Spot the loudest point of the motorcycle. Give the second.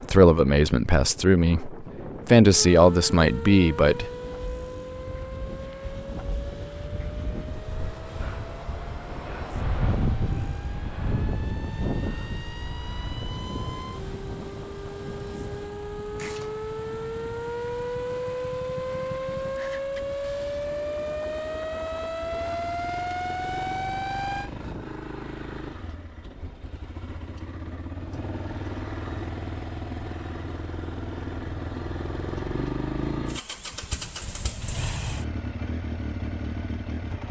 33 s.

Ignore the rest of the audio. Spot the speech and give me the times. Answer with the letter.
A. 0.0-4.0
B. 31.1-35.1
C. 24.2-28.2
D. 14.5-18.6
A.